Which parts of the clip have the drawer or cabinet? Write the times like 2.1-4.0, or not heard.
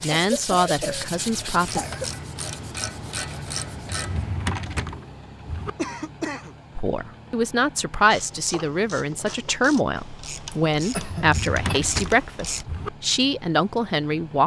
3.8-5.7, 11.1-12.9.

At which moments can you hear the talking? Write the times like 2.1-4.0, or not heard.
0.0-1.8, 6.8-14.4.